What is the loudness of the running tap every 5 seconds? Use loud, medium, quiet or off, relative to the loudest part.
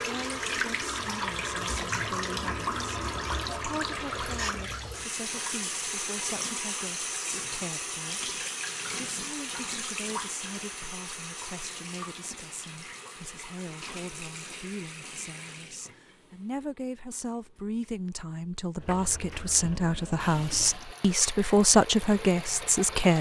loud, loud, medium, quiet, medium.